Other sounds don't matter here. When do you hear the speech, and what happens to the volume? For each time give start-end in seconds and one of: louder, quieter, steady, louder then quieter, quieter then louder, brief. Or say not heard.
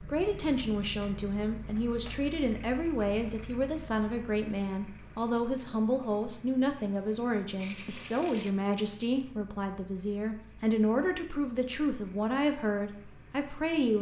0.1-13.9 steady.